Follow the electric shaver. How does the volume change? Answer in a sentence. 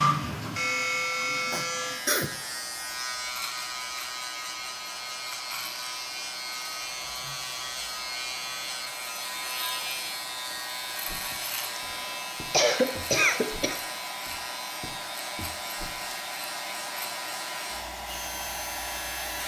The volume of the electric shaver goes down.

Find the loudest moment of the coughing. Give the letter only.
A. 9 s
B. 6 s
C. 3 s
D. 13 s
D.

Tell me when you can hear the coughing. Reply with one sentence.
The coughing can be heard from 1.5 to 2.3 s and from 11.3 to 13.8 s.